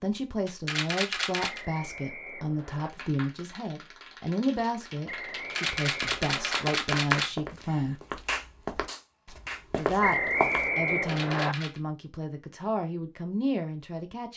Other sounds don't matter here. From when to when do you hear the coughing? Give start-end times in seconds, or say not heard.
not heard.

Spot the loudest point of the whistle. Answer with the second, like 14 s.
10 s.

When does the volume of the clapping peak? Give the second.
7 s.